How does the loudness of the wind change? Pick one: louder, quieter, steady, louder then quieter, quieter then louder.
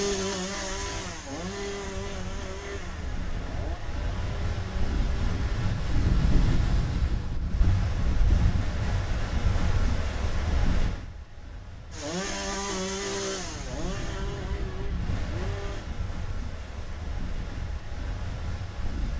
louder then quieter.